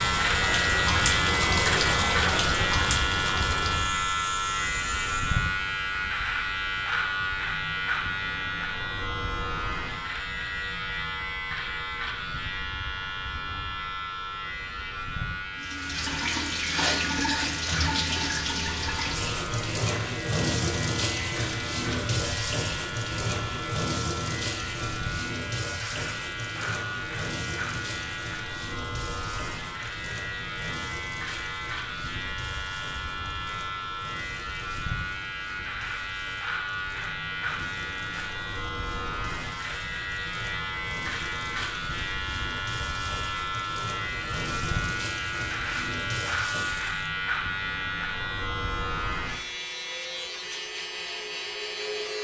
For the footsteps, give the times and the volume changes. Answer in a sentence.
You can't hear the footsteps here.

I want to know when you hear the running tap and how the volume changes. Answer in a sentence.
You can hear the running tap from 0.0 to 5.5 s, getting quieter; and from 15.6 to 47.1 s, getting quieter then louder.